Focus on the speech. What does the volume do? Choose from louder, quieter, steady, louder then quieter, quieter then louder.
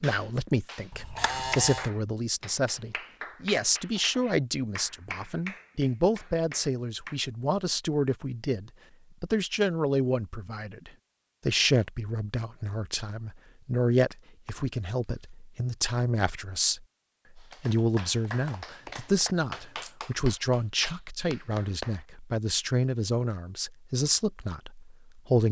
steady.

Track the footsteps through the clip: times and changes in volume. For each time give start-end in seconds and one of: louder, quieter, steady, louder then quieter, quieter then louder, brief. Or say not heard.
not heard.